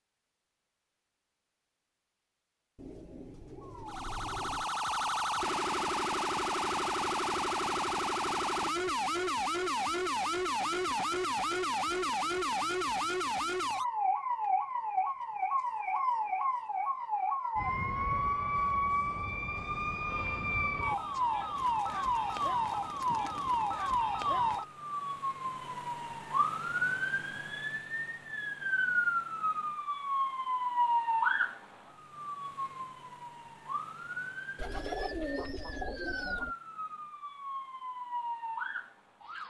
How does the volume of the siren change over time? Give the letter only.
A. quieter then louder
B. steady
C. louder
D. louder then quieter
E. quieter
E.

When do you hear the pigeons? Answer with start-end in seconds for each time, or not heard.
2.8-4.7, 21.6-24.1, 34.5-36.5.